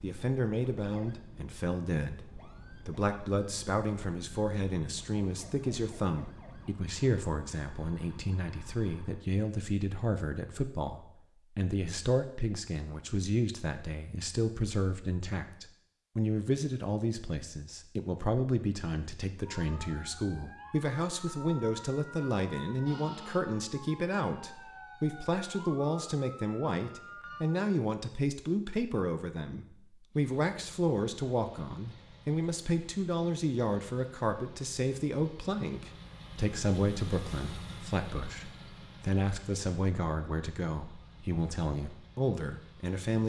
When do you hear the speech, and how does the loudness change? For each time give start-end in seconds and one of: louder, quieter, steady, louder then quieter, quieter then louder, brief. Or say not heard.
0.0-43.2 steady.